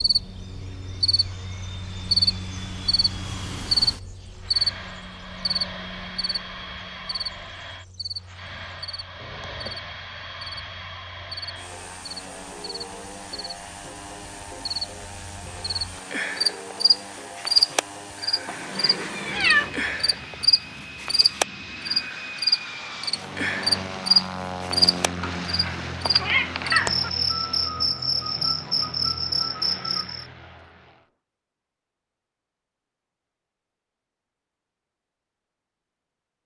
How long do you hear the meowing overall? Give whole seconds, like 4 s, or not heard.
4 s.